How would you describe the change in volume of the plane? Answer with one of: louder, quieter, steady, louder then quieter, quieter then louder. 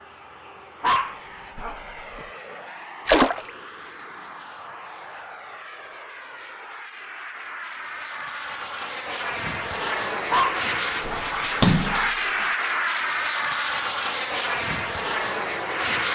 louder.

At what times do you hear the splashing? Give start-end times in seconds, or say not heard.
3.0-3.5, 11.5-12.5.